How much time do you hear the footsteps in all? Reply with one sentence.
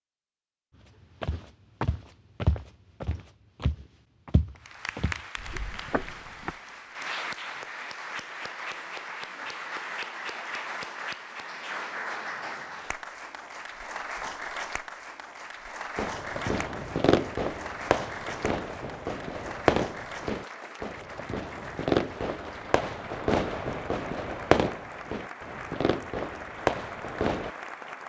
The footsteps can be heard for 5 seconds in total.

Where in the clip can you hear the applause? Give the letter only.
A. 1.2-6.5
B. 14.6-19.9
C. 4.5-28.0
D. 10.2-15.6
C.